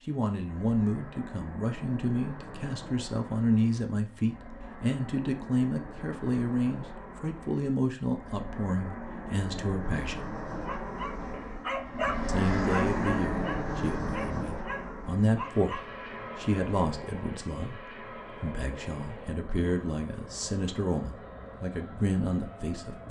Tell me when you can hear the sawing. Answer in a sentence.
You can't hear the sawing here.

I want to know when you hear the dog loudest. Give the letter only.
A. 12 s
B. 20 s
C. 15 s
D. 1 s
A.